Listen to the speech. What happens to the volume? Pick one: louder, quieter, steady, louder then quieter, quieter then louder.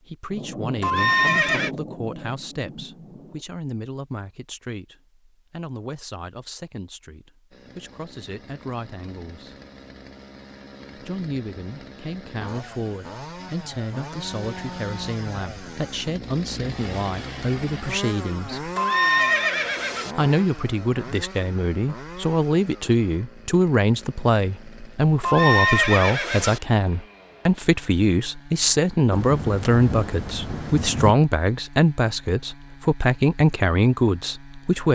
louder.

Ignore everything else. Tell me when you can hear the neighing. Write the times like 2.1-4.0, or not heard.
0.8-1.7, 18.8-20.1, 25.2-26.6.